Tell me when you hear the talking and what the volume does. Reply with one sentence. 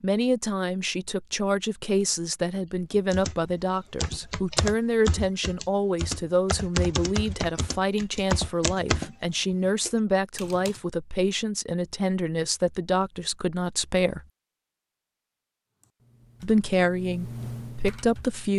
You can hear the talking from 0.0 to 14.2 s, at a steady volume; and briefly from 16.4 to 18.5 s.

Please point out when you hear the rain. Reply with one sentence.
The rain can't be heard in this clip.